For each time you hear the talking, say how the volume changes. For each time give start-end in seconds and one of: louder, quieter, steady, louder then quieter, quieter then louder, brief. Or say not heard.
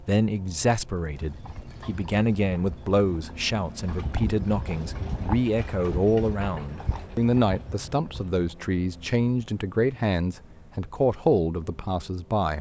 0.0-12.5 steady.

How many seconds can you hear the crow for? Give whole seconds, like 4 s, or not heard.
not heard.